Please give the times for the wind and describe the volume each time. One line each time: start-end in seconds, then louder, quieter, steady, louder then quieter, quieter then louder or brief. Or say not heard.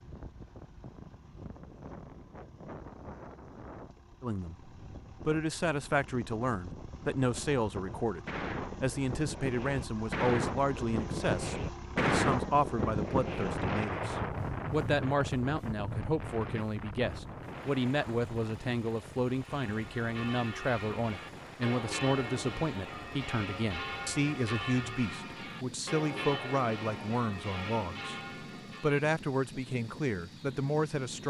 0.0-31.2 louder then quieter.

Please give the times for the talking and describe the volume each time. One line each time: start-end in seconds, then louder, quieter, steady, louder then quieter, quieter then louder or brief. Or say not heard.
4.2-28.2 steady
28.8-31.2 brief.